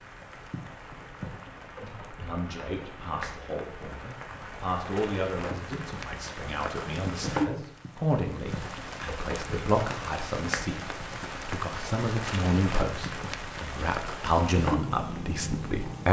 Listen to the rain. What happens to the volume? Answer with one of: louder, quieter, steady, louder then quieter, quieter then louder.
louder.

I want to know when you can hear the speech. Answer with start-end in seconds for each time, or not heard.
1.8-16.0.